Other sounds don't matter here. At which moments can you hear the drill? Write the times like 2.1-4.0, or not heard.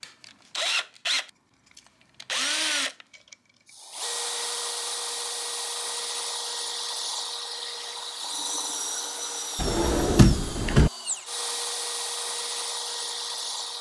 0.0-13.7.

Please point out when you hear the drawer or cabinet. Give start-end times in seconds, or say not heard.
9.6-10.9.